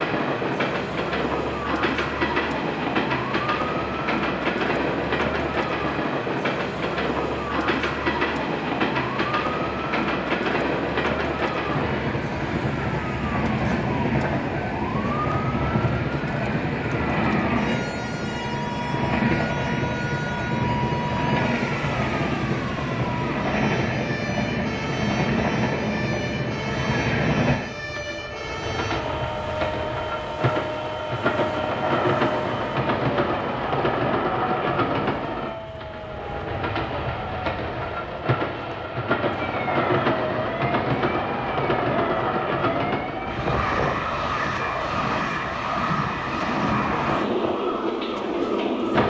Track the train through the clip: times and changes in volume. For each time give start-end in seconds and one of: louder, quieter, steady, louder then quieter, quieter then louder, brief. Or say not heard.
0.0-49.0 steady.